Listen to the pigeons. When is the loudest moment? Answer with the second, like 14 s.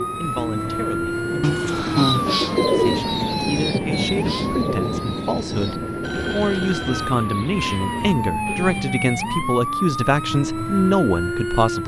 3 s.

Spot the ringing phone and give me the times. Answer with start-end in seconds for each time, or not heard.
1.4-2.4, 6.0-7.2.